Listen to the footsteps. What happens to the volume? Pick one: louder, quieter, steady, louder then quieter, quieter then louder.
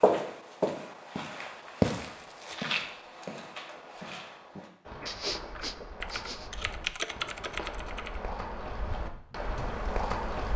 quieter then louder.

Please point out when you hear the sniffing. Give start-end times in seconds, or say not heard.
4.5-6.5.